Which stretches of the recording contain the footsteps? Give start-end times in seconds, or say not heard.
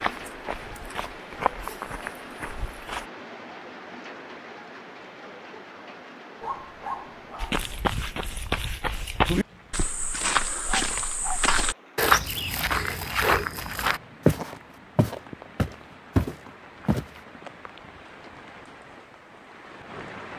0.0-3.0, 7.4-17.2.